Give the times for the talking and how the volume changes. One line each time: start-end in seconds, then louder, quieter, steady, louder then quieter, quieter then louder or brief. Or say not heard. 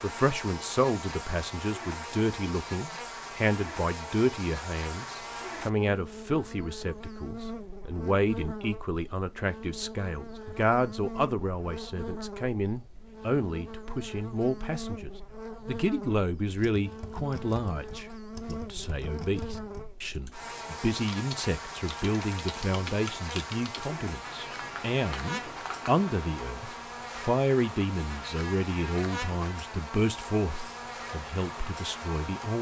0.0-32.5 steady.